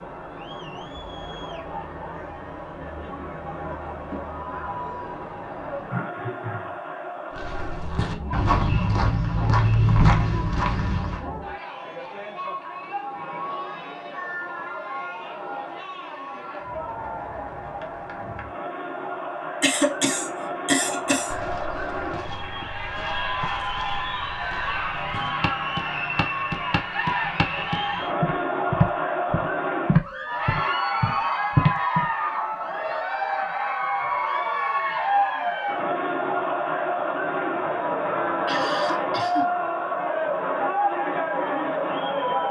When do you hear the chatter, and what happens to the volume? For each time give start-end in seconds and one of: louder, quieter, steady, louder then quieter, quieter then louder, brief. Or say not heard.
0.0-42.4 louder.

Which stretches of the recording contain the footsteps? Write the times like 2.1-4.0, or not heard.
7.3-11.2, 21.3-32.0.